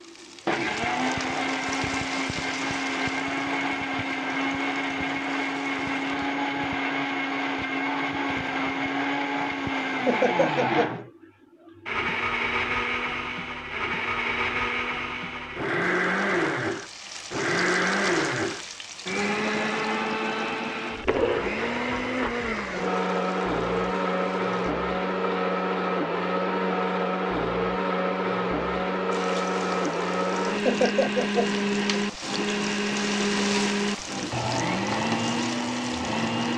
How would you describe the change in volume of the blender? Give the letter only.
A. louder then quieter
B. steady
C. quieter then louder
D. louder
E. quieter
B.